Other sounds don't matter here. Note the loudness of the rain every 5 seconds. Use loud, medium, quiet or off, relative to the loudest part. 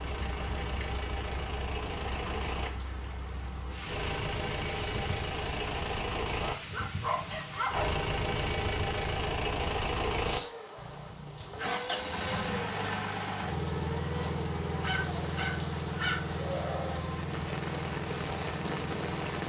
medium, medium, loud, loud.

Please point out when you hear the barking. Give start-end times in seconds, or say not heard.
6.5-7.9, 14.8-16.2.